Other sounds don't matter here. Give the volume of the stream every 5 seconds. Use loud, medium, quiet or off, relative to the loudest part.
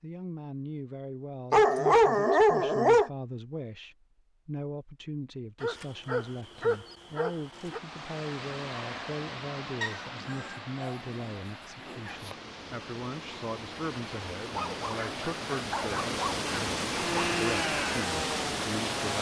off, medium, medium, loud.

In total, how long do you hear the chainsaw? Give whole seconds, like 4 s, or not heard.
2 s.